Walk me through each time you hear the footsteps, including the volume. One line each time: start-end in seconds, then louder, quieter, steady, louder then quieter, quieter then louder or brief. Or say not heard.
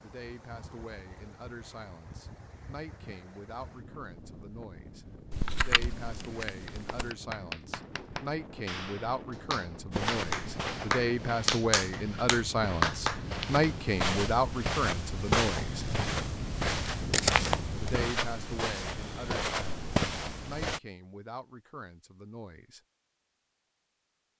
9.9-20.8 louder.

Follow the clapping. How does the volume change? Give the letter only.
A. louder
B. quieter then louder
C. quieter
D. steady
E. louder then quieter
A.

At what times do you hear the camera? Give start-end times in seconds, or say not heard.
5.3-7.1, 17.1-17.9.